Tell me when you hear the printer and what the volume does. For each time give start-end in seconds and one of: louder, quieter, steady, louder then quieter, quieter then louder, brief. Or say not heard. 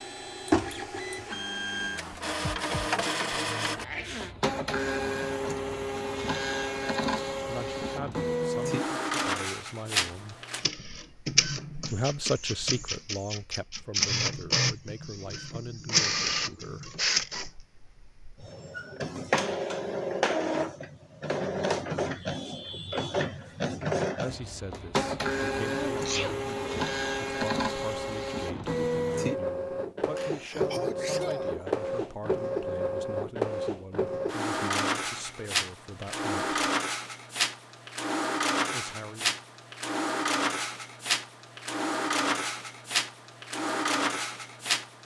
0.0-45.0 steady.